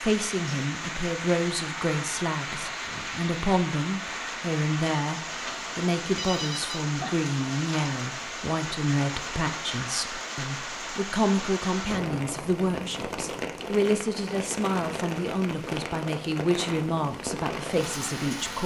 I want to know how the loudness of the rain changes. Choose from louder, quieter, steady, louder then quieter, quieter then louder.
steady.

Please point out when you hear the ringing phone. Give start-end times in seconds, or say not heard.
6.2-6.8.